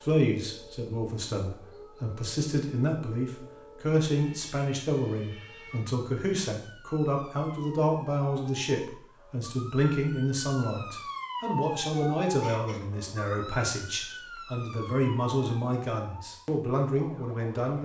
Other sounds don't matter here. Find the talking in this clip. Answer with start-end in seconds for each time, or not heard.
0.0-17.7.